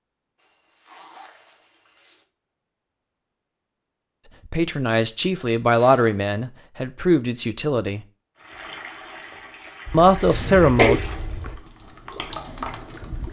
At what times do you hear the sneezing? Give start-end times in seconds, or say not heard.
10.1-11.5.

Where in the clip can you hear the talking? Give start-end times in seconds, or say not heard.
4.5-8.0, 9.9-11.0.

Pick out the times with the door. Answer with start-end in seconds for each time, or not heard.
not heard.